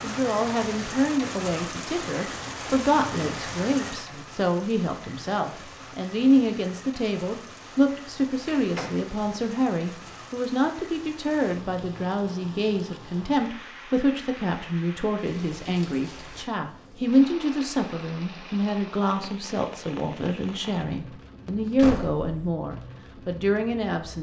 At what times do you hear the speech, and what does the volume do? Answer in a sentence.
The speech can be heard from 0.0 to 24.1 s, at a steady volume.